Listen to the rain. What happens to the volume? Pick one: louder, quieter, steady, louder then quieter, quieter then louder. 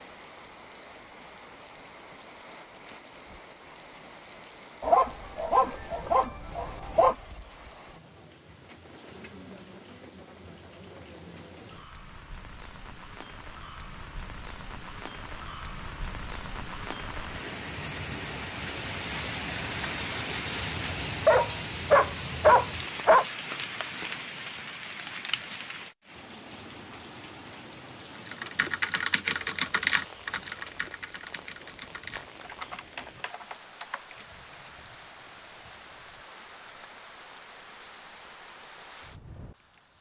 louder then quieter.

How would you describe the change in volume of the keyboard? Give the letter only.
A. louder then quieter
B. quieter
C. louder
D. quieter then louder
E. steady
B.